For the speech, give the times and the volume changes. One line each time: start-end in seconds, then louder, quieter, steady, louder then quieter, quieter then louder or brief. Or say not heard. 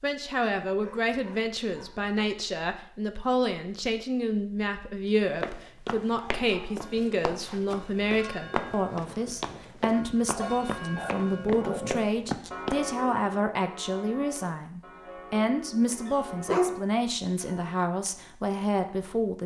0.0-19.4 steady.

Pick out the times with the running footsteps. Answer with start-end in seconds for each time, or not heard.
5.2-12.8.